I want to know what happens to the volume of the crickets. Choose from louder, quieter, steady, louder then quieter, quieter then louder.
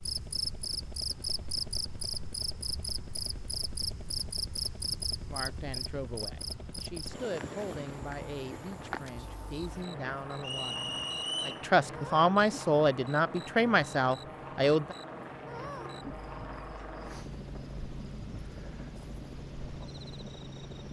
quieter.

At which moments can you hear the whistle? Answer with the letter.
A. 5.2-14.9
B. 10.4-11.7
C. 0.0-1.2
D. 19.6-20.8
B.